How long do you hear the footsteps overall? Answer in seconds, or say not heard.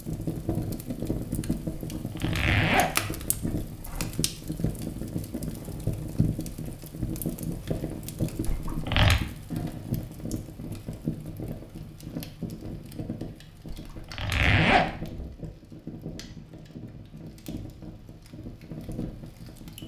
not heard.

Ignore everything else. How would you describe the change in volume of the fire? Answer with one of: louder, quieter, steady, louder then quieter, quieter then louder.
quieter.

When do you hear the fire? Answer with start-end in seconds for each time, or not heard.
0.0-19.8.